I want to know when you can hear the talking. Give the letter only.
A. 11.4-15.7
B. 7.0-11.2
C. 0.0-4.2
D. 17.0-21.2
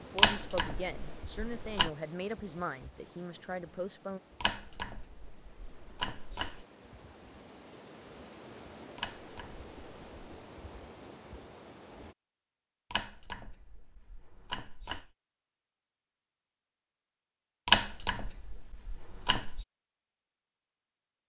C.